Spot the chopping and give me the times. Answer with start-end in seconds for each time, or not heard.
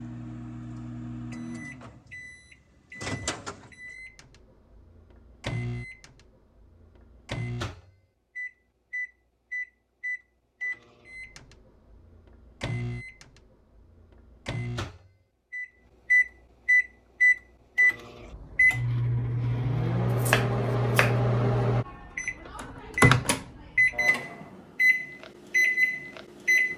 20.1-21.1.